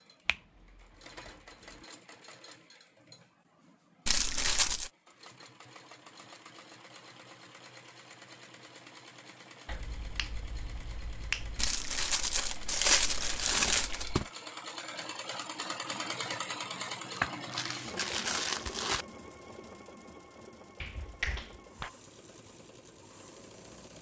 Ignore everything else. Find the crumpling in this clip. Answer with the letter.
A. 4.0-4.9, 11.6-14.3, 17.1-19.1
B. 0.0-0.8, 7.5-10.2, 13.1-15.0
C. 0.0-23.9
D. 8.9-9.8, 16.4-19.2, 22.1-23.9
A.